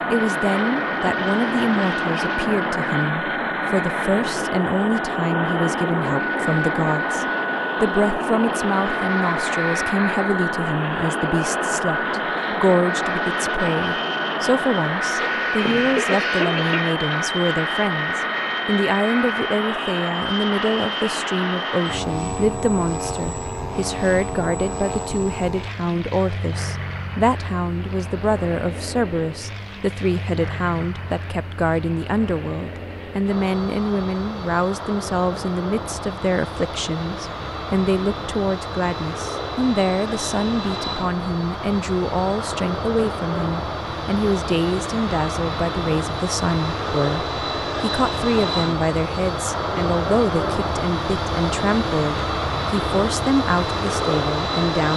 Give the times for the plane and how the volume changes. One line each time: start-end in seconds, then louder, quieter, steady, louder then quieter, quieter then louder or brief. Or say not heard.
0.0-54.9 quieter then louder.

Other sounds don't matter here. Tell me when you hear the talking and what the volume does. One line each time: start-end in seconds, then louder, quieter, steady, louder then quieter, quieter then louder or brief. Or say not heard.
0.1-54.9 steady.